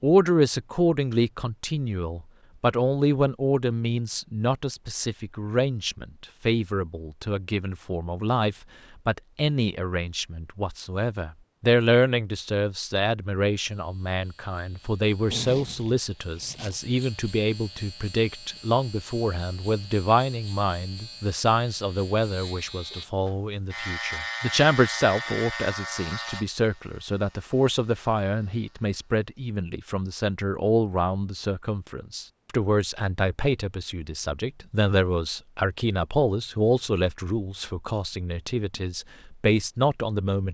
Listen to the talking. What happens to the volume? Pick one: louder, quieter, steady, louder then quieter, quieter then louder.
steady.